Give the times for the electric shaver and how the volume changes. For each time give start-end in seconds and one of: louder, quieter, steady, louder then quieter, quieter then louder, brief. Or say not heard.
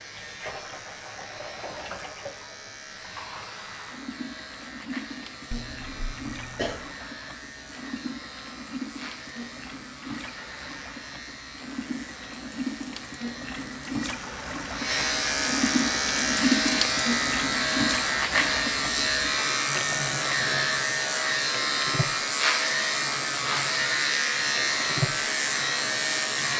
0.0-26.5 louder.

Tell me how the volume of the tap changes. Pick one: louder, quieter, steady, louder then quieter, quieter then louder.
louder then quieter.